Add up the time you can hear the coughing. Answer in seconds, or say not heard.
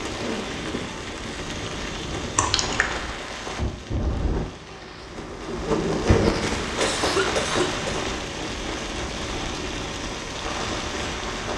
2 s.